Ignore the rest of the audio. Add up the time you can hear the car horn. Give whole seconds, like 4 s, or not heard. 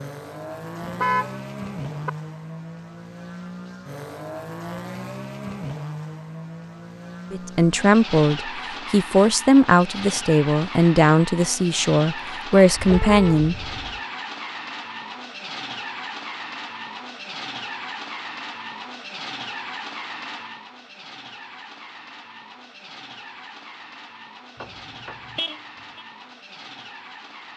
4 s.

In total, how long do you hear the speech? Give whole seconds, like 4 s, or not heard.
6 s.